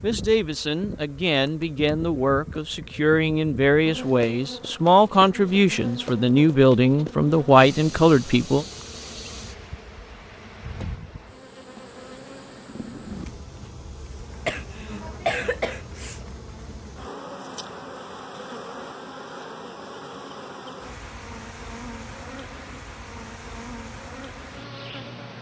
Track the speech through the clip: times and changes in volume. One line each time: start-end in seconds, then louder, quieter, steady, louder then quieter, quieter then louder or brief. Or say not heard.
0.0-8.7 louder.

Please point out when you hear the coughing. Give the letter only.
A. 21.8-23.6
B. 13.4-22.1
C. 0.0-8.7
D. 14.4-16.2
D.